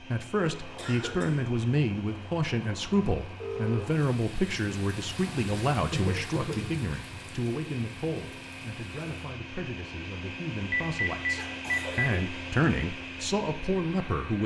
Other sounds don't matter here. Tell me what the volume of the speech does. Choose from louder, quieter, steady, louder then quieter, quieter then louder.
quieter then louder.